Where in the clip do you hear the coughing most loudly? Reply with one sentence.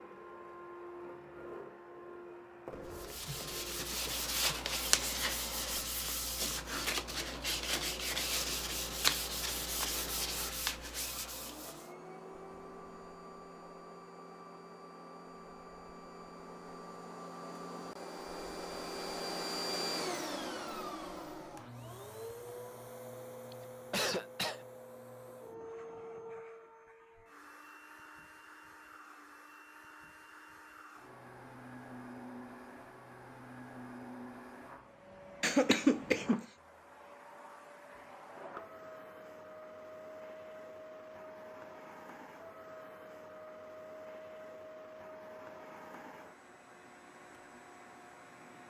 The loudest moment of the coughing is at 36 seconds.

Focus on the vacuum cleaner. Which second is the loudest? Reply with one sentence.
The loudest moment of the vacuum cleaner is at 20 seconds.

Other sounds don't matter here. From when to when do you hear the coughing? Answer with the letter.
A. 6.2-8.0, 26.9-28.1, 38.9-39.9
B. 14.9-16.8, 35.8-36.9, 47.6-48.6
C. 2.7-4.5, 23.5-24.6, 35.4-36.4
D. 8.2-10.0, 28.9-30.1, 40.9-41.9
C.